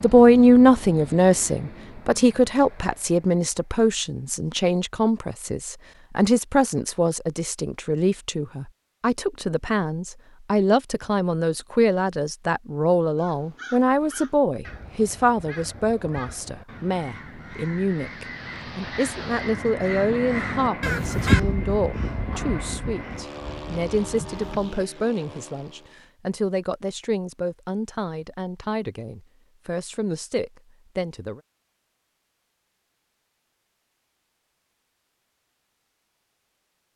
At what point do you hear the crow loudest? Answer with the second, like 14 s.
21 s.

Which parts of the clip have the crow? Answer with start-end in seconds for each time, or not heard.
13.2-24.9.